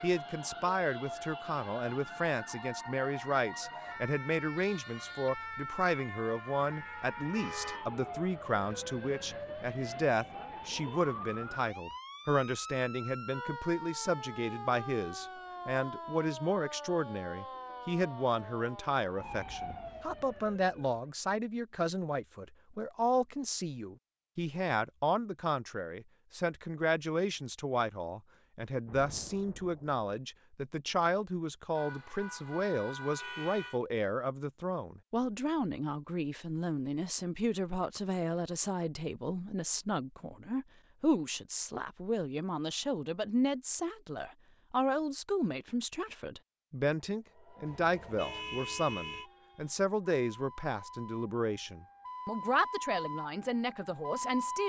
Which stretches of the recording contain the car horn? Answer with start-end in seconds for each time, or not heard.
7.3-7.8, 31.8-33.8, 47.6-49.3.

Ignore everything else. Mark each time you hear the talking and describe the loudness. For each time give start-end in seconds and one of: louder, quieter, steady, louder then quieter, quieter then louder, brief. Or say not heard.
0.0-54.6 steady.